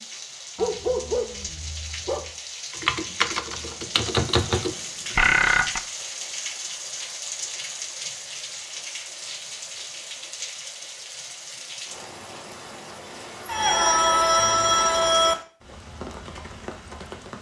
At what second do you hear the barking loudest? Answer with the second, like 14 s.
1 s.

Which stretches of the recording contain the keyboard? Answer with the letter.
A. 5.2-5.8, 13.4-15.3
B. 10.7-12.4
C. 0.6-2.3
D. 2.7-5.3
D.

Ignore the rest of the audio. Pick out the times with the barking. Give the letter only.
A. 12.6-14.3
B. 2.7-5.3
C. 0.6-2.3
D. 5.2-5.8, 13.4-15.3
C.